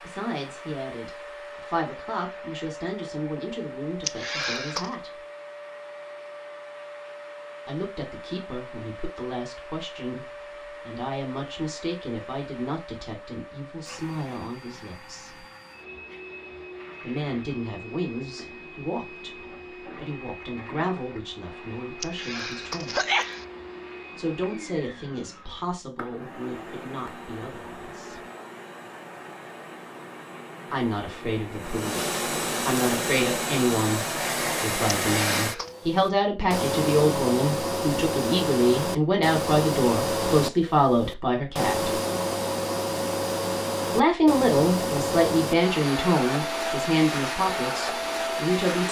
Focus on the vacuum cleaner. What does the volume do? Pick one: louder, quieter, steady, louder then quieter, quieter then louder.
louder.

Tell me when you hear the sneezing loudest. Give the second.
23 s.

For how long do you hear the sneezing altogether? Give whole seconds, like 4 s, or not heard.
3 s.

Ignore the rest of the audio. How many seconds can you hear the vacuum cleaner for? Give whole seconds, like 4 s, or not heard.
49 s.